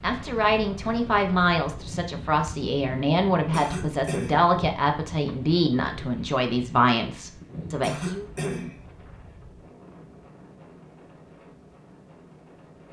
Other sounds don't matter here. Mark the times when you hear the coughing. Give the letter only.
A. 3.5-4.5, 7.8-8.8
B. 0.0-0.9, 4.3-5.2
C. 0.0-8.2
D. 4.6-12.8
A.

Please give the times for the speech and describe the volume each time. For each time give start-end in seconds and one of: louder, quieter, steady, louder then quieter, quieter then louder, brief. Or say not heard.
0.0-8.2 steady.